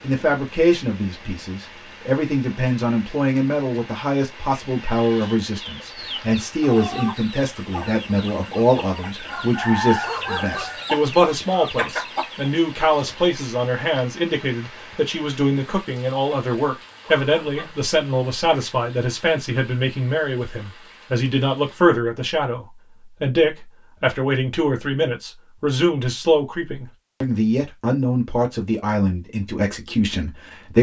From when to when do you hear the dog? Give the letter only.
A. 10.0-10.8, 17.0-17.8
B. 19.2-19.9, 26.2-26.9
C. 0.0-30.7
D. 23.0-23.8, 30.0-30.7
A.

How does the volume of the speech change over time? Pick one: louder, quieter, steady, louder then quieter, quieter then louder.
steady.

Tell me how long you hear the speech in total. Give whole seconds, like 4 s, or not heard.
31 s.